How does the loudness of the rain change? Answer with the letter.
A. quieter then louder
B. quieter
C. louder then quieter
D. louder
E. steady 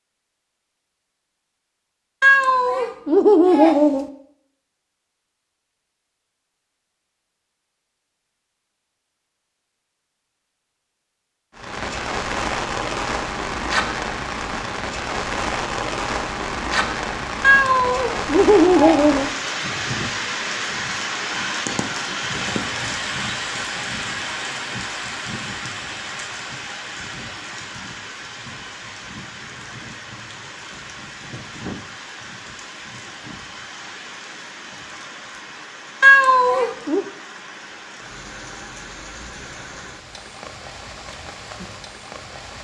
B.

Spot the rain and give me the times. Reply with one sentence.
The rain can be heard from 11.6 to 42.5 s.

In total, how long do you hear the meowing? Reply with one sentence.
You can hear the meowing for 5 seconds altogether.